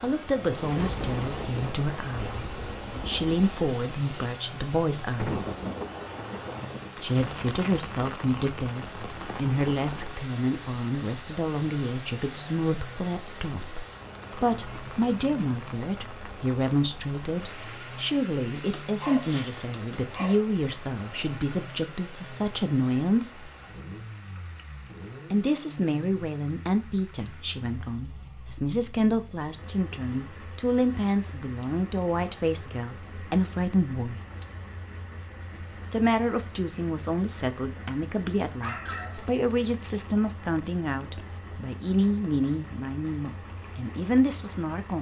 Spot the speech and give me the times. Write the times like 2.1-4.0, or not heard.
0.0-5.4, 7.0-23.5, 25.3-34.2, 35.9-44.9.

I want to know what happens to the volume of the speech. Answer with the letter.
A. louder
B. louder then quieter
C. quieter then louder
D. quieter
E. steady
E.